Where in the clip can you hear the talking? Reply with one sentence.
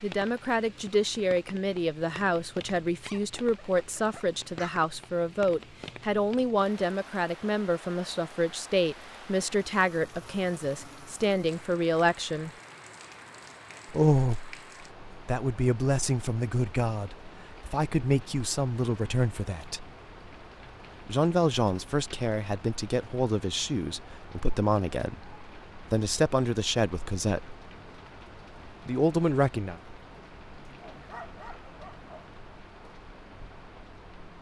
The talking can be heard from 0.0 to 12.5 s, from 13.9 to 14.6 s, from 15.2 to 19.9 s, from 21.1 to 27.6 s and from 28.9 to 29.8 s.